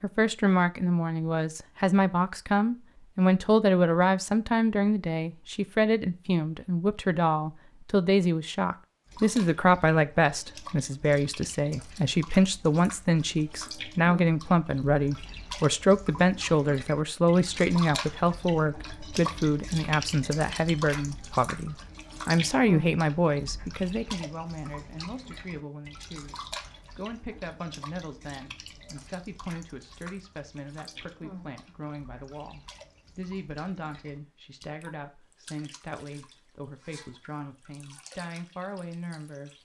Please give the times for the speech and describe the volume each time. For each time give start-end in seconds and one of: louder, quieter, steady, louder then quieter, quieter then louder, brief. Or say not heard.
0.0-39.5 quieter.